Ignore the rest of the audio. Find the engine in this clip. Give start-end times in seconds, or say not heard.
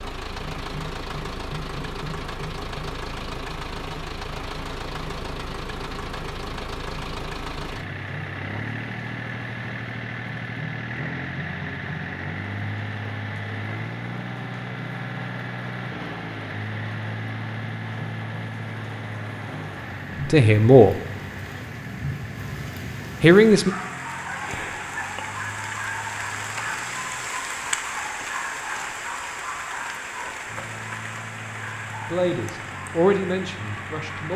0.0-27.3, 30.4-34.3.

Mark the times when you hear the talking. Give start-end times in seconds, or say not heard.
20.2-20.9, 23.2-23.7, 32.0-34.3.